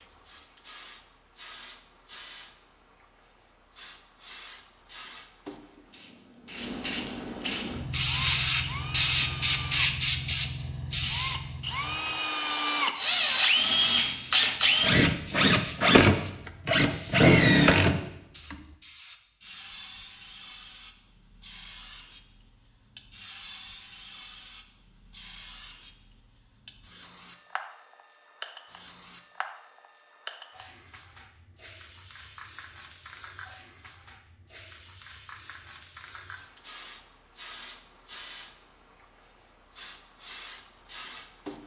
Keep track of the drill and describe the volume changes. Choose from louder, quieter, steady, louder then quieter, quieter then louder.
louder.